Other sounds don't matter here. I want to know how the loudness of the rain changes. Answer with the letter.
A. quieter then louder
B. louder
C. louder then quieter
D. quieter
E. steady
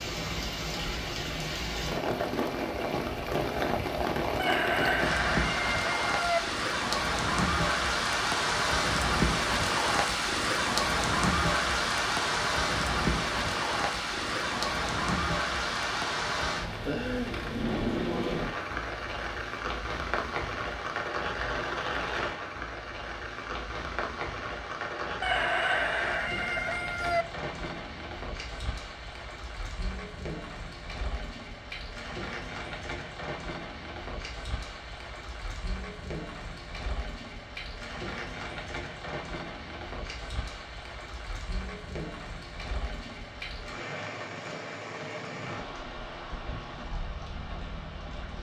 D.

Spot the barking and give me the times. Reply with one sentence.
You can't hear the barking here.